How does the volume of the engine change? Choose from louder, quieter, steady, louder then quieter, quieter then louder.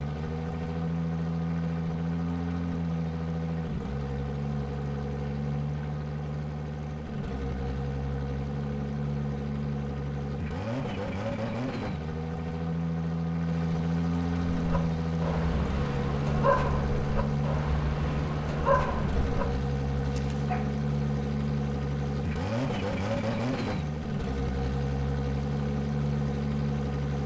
steady.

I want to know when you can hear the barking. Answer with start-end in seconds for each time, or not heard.
14.4-20.6.